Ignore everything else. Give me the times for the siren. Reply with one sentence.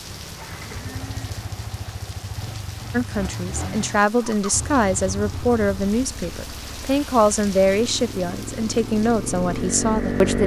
The siren can't be heard in this clip.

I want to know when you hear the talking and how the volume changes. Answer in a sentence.
The talking can be heard from 2.9 to 10.4 s, at a steady volume.